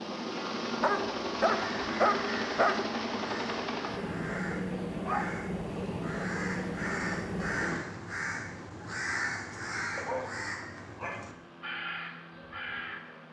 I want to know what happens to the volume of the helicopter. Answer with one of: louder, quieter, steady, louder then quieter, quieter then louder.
quieter.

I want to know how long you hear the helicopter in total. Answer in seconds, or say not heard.
13 s.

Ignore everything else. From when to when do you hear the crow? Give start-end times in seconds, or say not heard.
1.4-13.0.